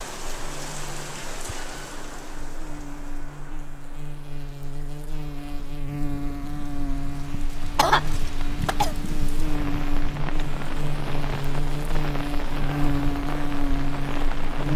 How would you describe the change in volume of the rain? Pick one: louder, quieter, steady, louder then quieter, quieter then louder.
quieter then louder.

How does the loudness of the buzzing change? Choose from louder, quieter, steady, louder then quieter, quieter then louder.
louder.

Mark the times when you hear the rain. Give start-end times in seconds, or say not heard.
0.0-14.7.